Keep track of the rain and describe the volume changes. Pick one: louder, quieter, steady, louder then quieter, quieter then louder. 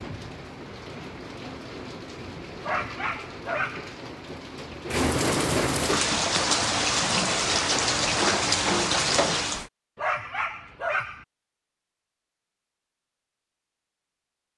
louder.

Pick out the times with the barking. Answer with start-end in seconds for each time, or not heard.
2.6-3.9, 9.9-11.2.